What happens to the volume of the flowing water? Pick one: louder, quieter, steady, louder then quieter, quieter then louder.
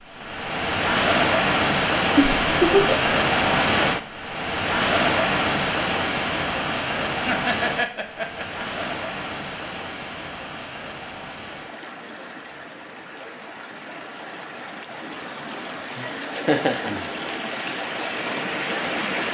quieter then louder.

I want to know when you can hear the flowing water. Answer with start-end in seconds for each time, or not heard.
0.0-19.2.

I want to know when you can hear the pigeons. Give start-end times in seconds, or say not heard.
not heard.